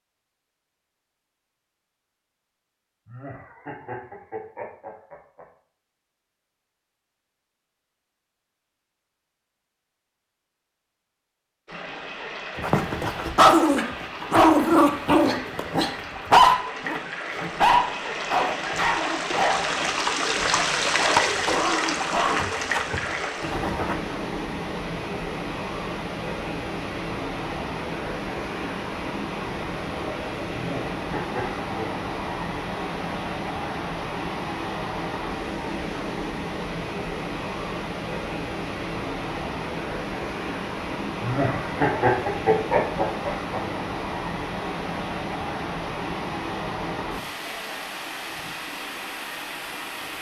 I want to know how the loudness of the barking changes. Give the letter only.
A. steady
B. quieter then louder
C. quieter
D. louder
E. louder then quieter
C.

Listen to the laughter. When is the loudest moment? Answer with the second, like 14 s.
42 s.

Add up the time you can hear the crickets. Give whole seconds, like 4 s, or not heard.
not heard.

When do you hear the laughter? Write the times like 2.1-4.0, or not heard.
3.0-5.5, 30.5-31.6, 41.2-43.6.